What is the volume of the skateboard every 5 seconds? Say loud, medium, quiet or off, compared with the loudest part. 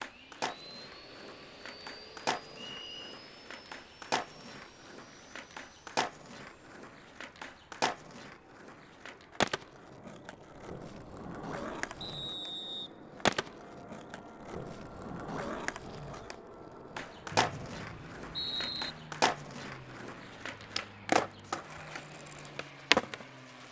medium, medium, medium, medium, loud.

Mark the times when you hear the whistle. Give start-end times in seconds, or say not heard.
2.5-3.2, 12.0-12.9, 17.3-18.9.